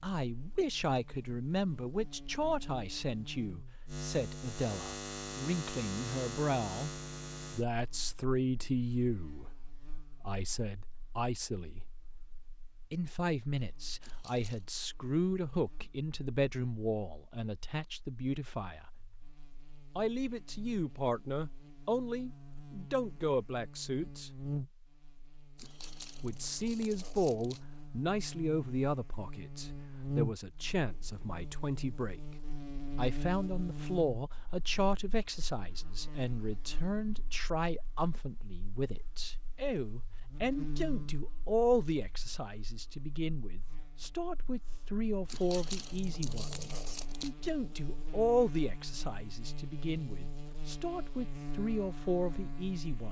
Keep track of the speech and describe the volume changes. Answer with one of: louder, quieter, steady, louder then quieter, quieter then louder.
steady.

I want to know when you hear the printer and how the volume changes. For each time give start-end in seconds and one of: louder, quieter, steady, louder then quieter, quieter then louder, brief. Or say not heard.
not heard.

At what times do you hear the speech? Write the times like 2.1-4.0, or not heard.
0.0-6.9, 7.5-11.8, 12.9-18.9, 19.9-24.3, 26.2-32.2, 33.0-53.0.